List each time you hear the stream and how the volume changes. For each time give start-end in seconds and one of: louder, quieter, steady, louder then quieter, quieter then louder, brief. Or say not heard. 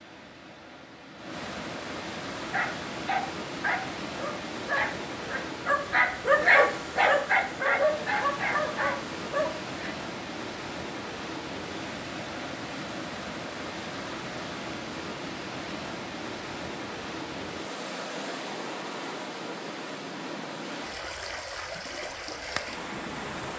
0.0-23.5 steady.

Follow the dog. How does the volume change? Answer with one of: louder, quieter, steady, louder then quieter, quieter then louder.
louder then quieter.